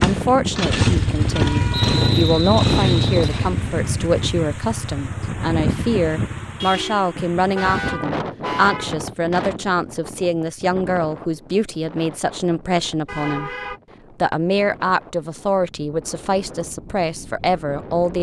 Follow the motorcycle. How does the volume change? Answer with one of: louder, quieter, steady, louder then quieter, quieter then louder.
quieter.